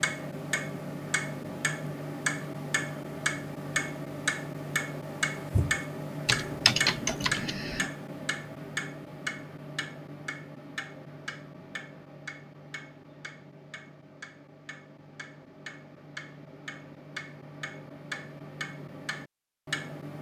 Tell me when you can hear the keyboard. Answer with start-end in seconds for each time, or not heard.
5.5-7.9.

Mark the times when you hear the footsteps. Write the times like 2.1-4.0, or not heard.
not heard.